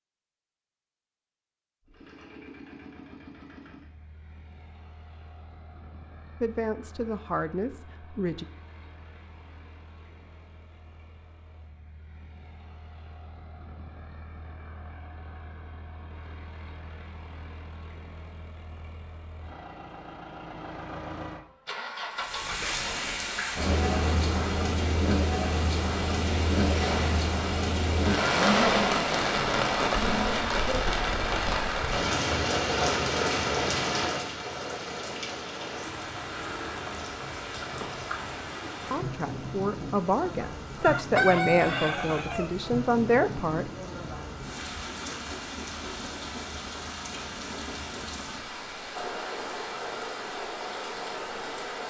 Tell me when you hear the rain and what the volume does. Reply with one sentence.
You can hear the rain from 22.1 to 51.8 s, getting quieter.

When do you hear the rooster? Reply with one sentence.
The rooster can be heard from 40.8 to 42.5 s.